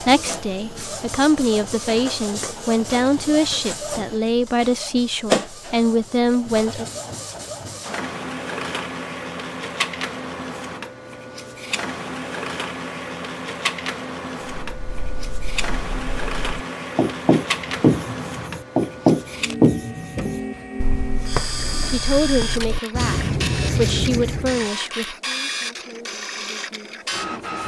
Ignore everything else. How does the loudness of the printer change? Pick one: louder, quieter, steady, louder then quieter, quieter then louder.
steady.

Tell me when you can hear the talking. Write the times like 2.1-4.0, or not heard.
0.0-6.8, 21.9-27.6.